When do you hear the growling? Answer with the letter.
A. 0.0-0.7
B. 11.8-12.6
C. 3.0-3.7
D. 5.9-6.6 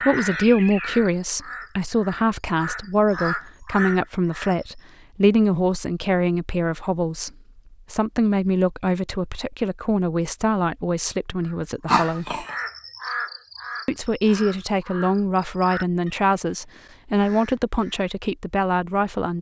B.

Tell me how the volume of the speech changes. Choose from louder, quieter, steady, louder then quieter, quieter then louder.
steady.